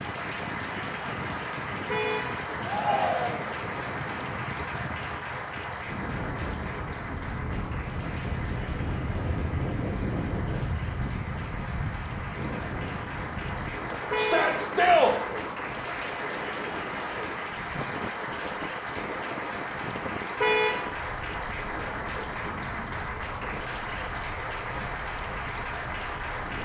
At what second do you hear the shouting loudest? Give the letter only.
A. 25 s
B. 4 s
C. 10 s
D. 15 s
D.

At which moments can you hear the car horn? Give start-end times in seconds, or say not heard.
1.9-2.4, 14.1-14.6, 20.4-20.9.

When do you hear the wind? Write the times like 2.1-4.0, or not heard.
0.0-26.5.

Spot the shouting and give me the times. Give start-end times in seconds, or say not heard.
2.6-3.5, 14.2-15.2.